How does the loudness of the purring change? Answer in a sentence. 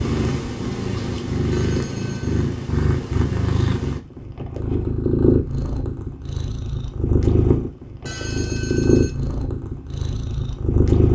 The volume of the purring stays about the same.